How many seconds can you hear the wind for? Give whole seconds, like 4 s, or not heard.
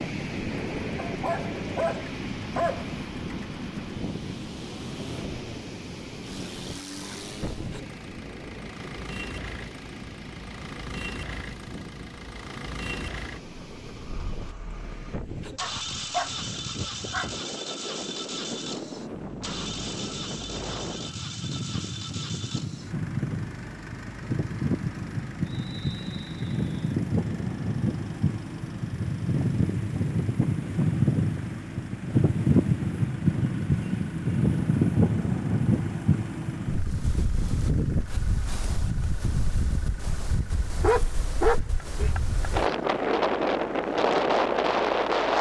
45 s.